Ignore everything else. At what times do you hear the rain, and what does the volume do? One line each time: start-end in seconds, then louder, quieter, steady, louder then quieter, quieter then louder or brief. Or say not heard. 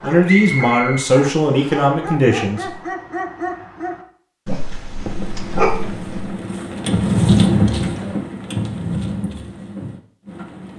4.8-10.7 louder then quieter.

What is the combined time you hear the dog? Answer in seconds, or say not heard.
6 s.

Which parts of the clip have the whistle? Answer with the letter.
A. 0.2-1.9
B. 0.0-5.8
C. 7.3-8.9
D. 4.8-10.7
A.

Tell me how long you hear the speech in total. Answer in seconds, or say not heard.
3 s.